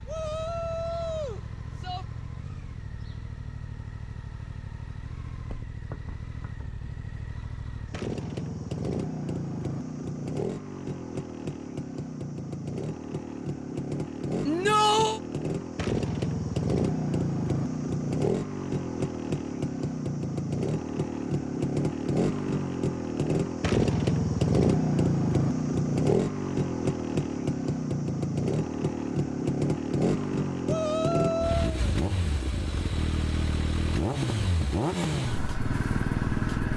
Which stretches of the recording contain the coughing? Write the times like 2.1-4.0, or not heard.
not heard.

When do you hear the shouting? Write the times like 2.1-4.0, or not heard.
0.1-2.0, 14.4-15.2, 30.6-31.8.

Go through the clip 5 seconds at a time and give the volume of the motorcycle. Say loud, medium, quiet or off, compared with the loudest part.
quiet, medium, medium, loud, loud, loud, loud, loud.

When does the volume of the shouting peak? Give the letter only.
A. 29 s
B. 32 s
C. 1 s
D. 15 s
D.